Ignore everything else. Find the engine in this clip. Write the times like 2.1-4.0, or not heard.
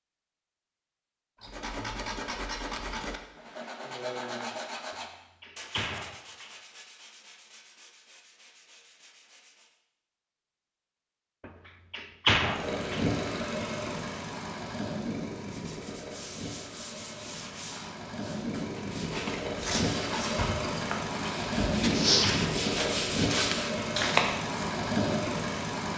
12.4-25.9.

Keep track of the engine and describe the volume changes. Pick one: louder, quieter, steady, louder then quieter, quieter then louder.
quieter then louder.